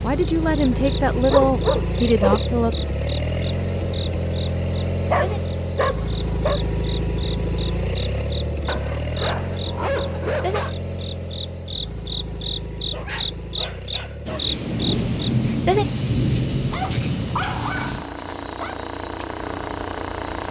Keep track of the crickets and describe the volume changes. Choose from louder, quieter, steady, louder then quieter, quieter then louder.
louder then quieter.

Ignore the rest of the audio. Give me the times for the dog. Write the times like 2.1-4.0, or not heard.
1.3-2.4, 5.1-6.6, 8.7-10.8, 12.9-14.5, 16.7-18.8.